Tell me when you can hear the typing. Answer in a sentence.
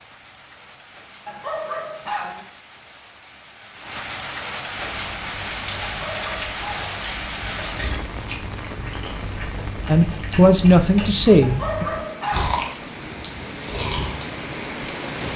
You can't hear the typing here.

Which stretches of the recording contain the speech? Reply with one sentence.
The speech can be heard from 9.8 to 11.8 s.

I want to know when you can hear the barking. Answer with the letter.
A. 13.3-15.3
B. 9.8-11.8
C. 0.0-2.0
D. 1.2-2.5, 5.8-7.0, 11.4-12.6
D.